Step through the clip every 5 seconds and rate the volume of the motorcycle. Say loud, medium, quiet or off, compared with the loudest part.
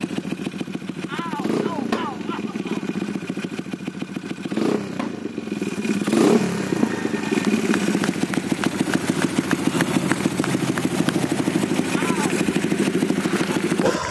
medium, loud, loud.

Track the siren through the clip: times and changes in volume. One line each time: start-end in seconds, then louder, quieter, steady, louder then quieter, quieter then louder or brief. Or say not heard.
not heard.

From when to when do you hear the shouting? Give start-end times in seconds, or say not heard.
1.1-2.9, 11.9-12.3.